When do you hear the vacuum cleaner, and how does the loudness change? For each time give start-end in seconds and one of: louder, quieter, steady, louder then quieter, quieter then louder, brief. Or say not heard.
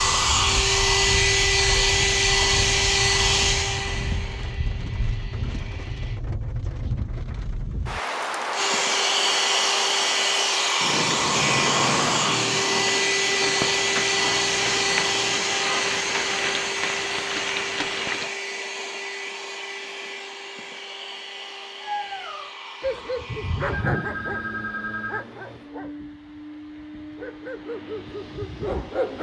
0.0-6.2 quieter
8.5-29.1 quieter.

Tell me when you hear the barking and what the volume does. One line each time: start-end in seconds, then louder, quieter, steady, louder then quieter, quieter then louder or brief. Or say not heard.
21.8-29.1 quieter then louder.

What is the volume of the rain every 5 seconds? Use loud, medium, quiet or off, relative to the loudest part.
medium, loud, loud, loud, off, off.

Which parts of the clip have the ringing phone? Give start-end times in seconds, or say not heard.
23.7-25.2.